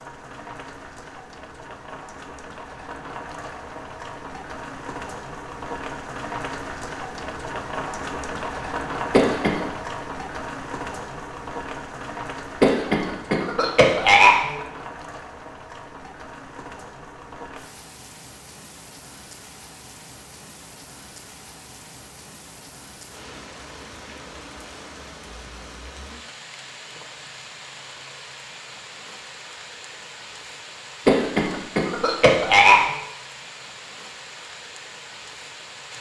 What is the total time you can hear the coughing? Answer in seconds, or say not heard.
4 s.